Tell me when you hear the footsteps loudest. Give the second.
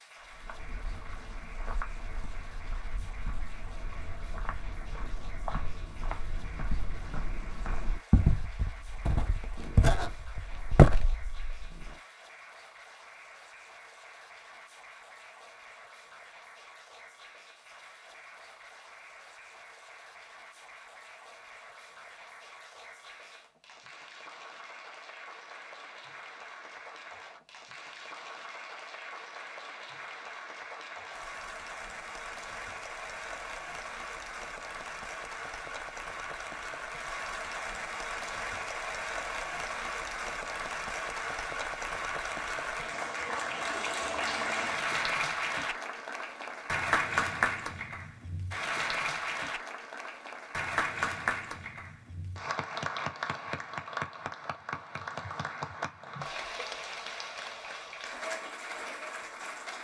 11 s.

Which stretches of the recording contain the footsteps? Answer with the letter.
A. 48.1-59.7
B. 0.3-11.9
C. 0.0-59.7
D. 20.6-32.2
B.